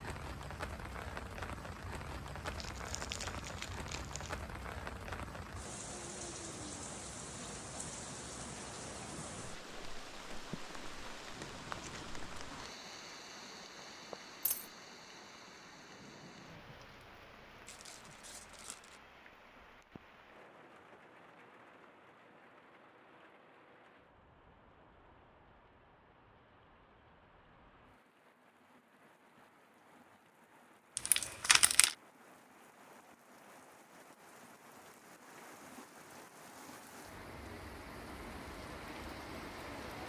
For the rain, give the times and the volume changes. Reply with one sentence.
The rain can be heard from 0.0 to 40.0 s, getting quieter then louder.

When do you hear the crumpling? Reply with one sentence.
The crumpling can be heard from 2.5 to 4.4 s, from 17.6 to 19.0 s and from 30.9 to 31.9 s.